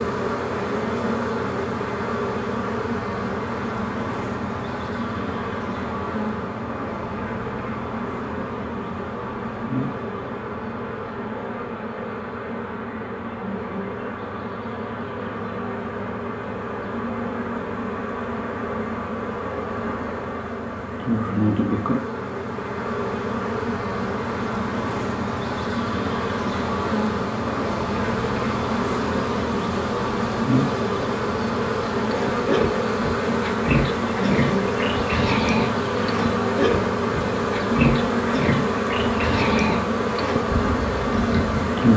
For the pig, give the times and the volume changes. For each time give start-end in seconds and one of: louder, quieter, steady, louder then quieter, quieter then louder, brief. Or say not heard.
32.0-41.8 steady.